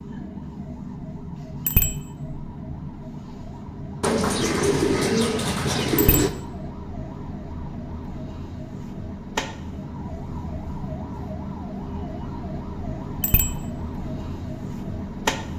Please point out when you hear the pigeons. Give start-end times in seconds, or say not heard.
4.0-6.3.